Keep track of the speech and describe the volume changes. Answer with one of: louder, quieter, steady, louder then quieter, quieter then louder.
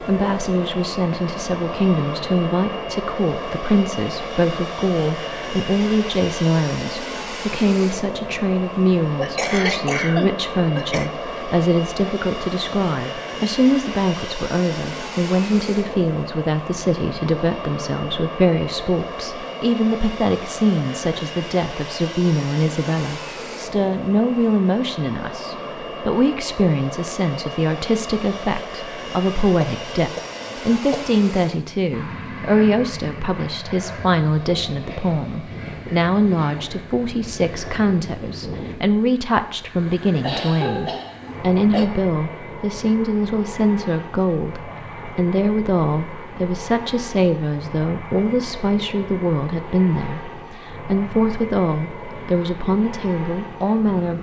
steady.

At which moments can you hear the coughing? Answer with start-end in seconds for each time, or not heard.
9.2-11.1, 29.4-31.2, 40.2-41.9.